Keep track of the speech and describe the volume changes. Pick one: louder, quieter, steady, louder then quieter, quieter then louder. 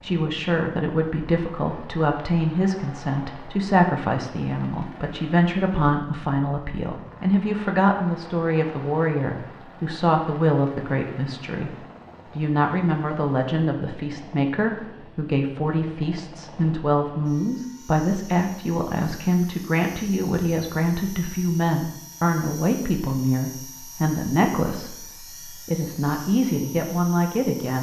steady.